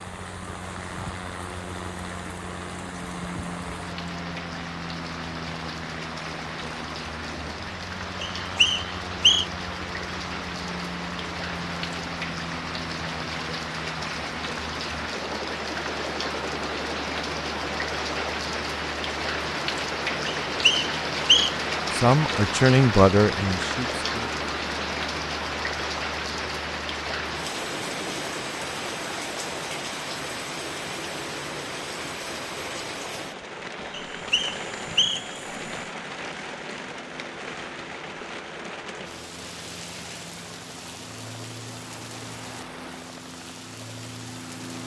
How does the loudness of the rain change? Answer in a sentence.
The loudness of the rain goes up, then down.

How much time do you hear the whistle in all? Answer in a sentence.
You can hear the whistle for 4 seconds altogether.